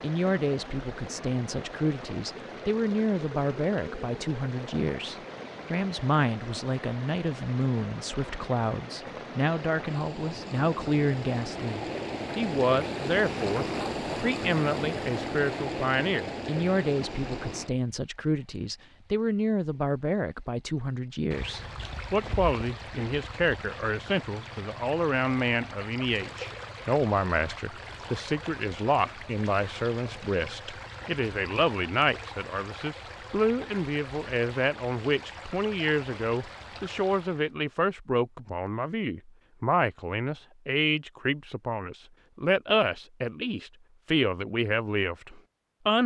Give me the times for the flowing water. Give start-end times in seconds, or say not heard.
0.0-37.5.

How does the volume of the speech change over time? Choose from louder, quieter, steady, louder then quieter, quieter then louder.
steady.